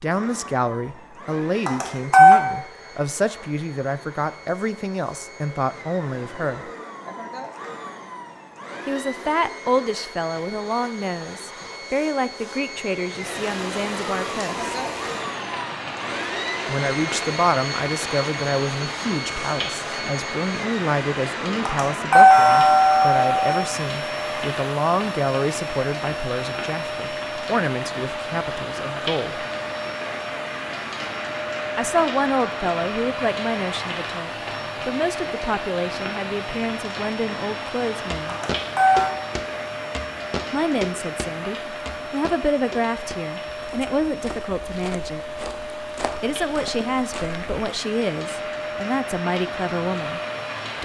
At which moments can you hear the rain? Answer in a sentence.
You can hear the rain from 13.2 to 50.8 s.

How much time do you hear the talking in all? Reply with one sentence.
You can hear the talking for 41 seconds altogether.